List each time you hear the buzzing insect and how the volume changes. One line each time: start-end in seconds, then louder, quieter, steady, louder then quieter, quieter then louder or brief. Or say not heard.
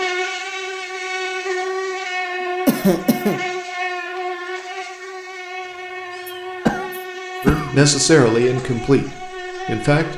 0.0-10.1 quieter.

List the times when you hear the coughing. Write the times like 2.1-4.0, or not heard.
2.6-3.4, 6.2-7.8.